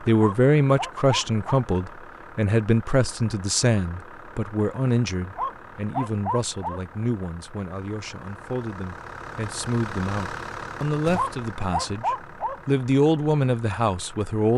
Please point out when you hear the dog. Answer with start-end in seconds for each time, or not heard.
0.2-1.6, 5.3-6.8, 11.2-12.8.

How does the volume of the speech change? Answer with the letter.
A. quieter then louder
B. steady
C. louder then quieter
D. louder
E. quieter
A.